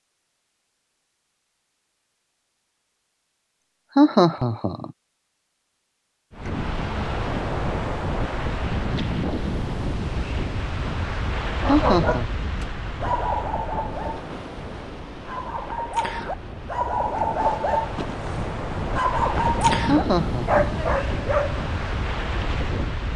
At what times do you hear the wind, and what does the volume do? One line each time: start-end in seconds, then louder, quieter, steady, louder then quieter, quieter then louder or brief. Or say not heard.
6.3-23.1 quieter then louder.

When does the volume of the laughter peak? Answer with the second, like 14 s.
4 s.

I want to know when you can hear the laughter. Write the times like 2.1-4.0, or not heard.
4.0-4.9, 11.7-12.3, 19.9-20.8.